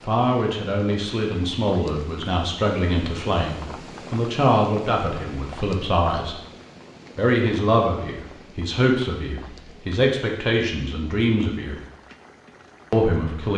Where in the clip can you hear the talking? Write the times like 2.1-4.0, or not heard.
0.0-6.3, 7.2-11.8, 12.9-13.5.